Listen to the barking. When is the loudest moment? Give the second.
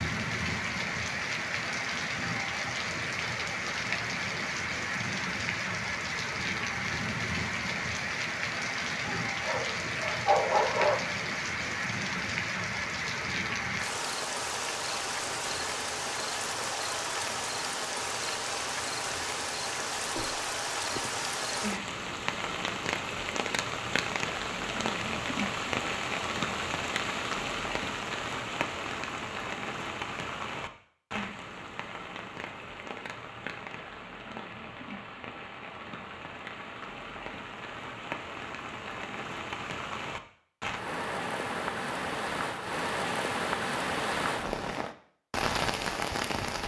10 s.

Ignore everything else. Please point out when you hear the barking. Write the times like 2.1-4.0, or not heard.
8.9-11.0.